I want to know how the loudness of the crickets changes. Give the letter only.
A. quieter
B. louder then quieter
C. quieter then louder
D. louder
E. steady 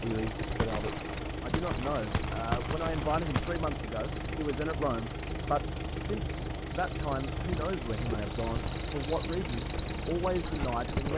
C.